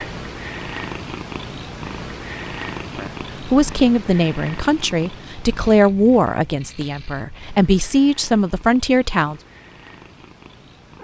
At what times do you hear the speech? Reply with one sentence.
You can hear the speech from 3.0 to 9.3 s.